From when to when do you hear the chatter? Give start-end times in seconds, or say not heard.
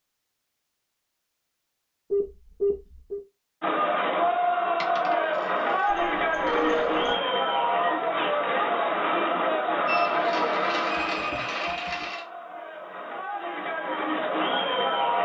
3.6-15.2.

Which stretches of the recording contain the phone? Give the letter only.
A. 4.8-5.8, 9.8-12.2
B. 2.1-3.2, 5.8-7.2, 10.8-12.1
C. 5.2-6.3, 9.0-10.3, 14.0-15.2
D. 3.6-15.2
B.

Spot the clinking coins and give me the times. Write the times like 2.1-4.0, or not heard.
4.8-5.8, 9.8-12.2.